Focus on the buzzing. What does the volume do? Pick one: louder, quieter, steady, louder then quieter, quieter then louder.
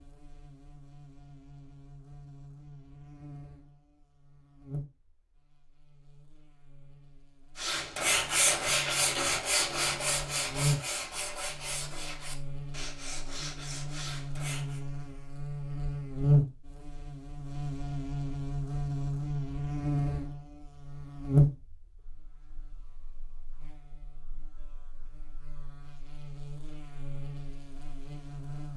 louder then quieter.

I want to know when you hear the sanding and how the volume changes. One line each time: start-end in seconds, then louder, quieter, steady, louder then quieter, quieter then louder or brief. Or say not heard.
7.5-14.8 quieter.